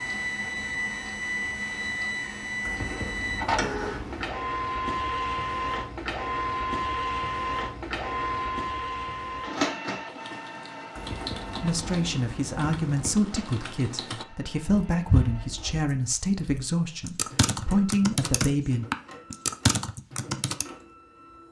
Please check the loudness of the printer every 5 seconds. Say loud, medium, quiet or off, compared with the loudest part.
loud, loud, quiet, quiet, quiet.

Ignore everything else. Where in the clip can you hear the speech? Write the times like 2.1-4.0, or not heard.
11.6-18.9.